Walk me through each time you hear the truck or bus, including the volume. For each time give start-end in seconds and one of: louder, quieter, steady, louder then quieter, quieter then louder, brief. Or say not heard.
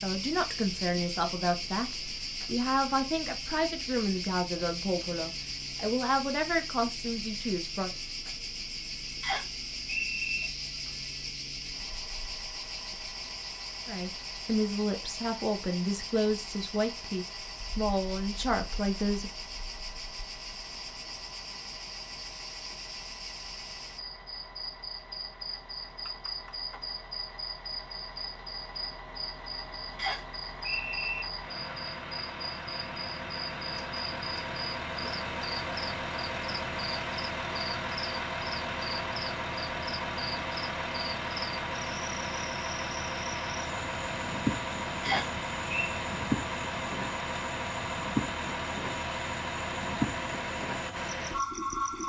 0.0-52.0 louder.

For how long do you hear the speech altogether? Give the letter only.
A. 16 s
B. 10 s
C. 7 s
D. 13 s
D.